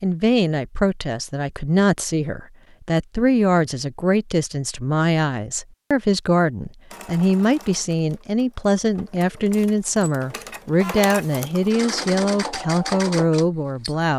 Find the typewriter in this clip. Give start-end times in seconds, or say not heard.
not heard.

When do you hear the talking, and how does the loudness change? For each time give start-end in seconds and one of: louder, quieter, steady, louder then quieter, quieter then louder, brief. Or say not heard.
0.0-14.1 steady.